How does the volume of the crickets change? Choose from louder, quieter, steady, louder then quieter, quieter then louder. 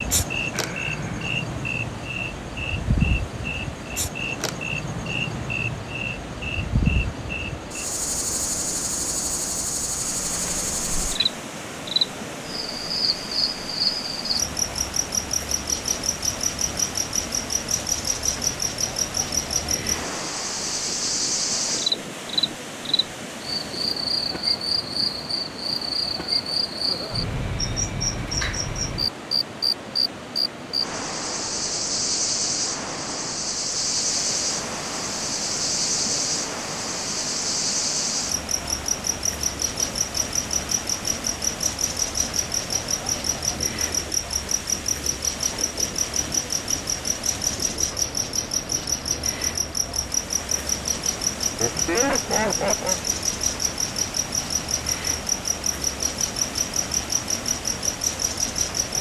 steady.